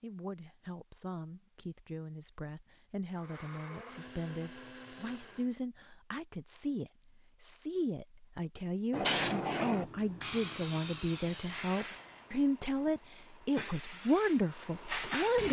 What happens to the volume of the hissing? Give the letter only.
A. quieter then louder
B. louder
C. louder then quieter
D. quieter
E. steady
A.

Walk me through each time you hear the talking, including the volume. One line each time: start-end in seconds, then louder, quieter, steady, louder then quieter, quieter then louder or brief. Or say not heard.
0.0-15.4 louder.